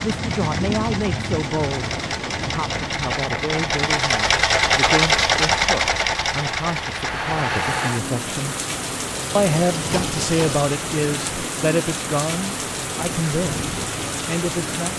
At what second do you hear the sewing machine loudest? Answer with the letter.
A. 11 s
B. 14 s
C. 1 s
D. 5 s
D.